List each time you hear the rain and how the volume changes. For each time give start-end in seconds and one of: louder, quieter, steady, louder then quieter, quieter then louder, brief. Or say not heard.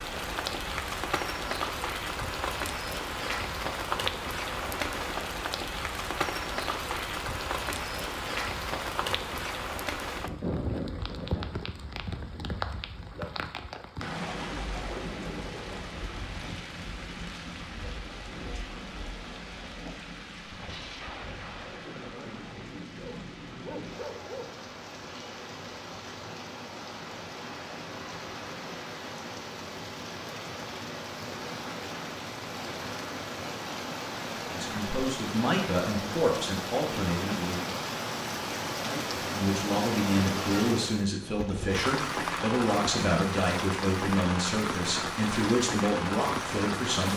0.0-47.1 quieter then louder.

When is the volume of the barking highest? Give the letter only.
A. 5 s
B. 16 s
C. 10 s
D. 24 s
D.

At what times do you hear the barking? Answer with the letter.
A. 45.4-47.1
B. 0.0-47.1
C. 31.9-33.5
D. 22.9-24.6
D.